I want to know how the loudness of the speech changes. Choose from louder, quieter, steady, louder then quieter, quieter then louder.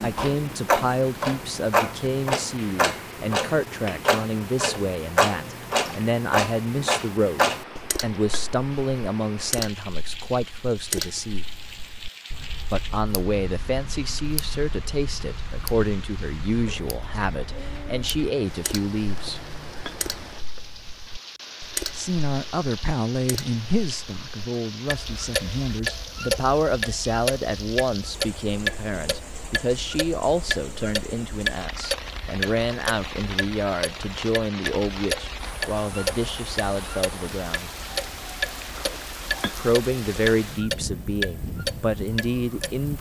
steady.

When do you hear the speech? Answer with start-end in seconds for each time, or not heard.
0.0-11.4, 12.7-19.4, 21.9-37.7, 39.4-42.9.